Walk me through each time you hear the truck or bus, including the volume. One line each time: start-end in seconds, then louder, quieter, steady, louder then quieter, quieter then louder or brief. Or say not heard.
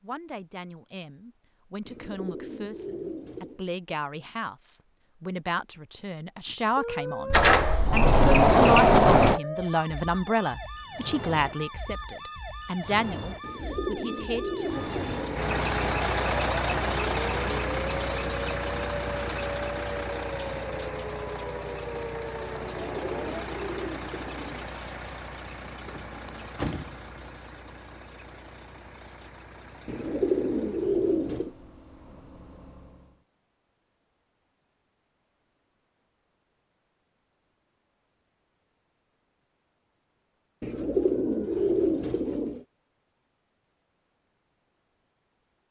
14.6-33.2 quieter.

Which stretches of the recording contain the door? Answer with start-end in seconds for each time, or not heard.
7.3-9.4, 25.9-27.3.